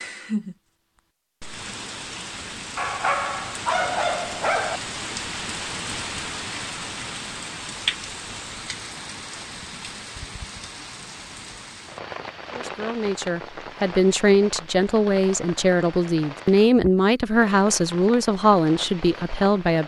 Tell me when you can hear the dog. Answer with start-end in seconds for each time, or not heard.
2.8-4.8.